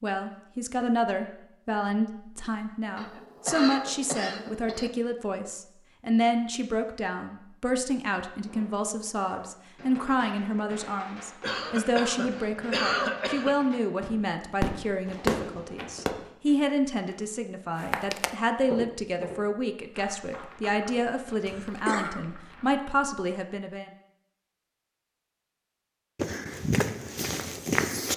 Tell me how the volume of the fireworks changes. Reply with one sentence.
The volume of the fireworks goes up.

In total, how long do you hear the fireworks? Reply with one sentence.
The fireworks can be heard for 8 seconds in total.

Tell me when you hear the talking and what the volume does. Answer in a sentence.
The talking can be heard from 0.0 to 23.9 s, at a steady volume.